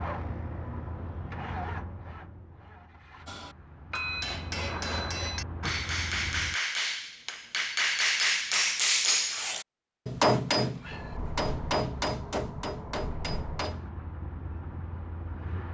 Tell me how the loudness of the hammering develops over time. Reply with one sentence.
The loudness of the hammering goes up, then down.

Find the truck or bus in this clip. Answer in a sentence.
The truck or bus can be heard from 0.0 to 6.5 s and from 10.8 to 15.6 s.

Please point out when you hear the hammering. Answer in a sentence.
The hammering can be heard from 3.2 to 13.9 s.